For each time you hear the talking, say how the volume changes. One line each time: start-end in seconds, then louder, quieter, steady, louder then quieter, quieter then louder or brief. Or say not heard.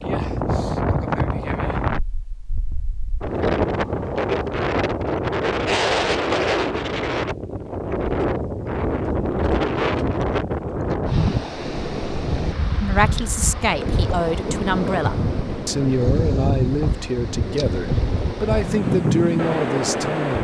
12.8-20.3 steady.